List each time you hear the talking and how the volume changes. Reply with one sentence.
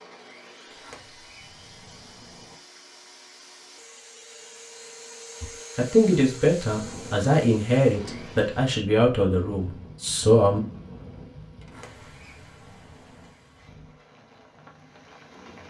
You can hear the talking from 5.4 to 10.6 s, getting quieter.